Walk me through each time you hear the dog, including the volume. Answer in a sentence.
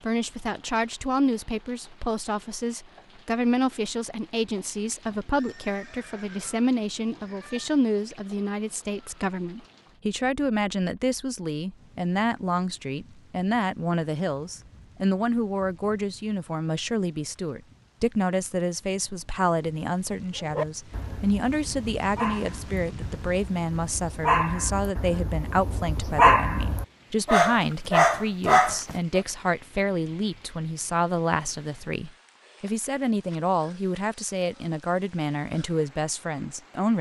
You can hear the dog from 20.4 to 29.2 s, getting quieter then louder.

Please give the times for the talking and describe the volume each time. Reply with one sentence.
You can hear the talking from 0.0 to 36.9 s, at a steady volume.